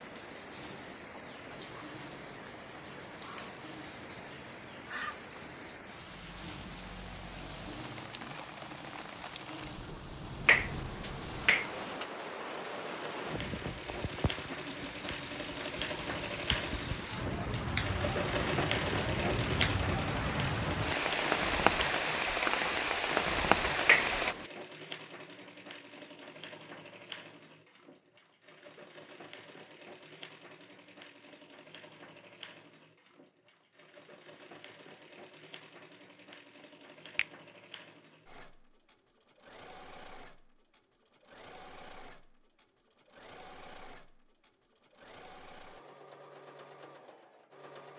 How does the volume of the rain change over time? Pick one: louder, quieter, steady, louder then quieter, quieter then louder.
louder.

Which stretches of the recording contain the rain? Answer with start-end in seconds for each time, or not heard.
0.0-24.4.